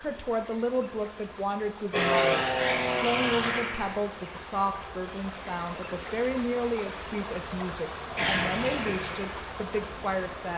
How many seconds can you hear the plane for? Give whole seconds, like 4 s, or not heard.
5 s.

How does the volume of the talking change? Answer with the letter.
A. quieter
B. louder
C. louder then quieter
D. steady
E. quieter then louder
D.